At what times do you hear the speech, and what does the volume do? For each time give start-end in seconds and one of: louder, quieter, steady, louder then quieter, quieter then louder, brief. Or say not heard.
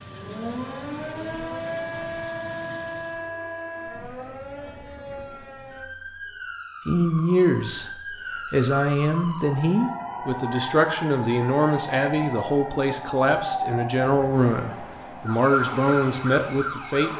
6.8-7.9 brief
8.5-17.1 steady.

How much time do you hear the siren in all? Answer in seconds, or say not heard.
17 s.